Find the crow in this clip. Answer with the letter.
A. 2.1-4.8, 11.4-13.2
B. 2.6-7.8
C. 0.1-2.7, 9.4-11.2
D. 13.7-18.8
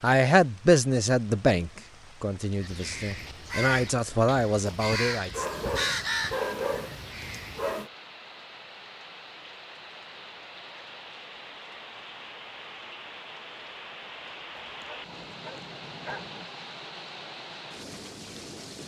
B.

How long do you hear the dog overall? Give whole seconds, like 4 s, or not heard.
4 s.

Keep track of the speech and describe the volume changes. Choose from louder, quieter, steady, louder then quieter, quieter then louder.
quieter then louder.